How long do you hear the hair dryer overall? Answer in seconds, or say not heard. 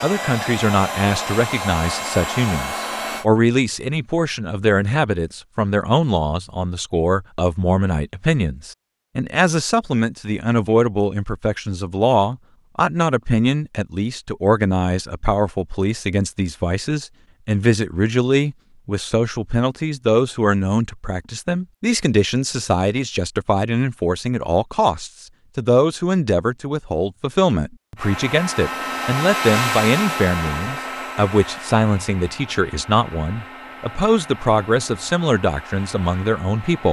12 s.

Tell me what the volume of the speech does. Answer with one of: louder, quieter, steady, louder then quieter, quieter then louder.
steady.